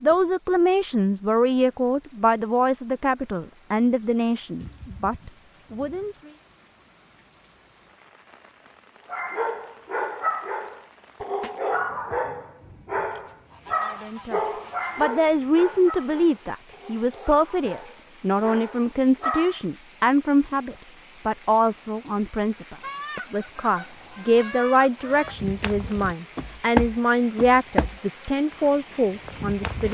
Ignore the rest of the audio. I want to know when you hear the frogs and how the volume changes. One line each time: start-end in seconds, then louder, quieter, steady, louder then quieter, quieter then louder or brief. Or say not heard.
not heard.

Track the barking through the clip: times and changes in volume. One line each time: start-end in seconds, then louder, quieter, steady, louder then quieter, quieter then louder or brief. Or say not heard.
9.1-19.6 quieter.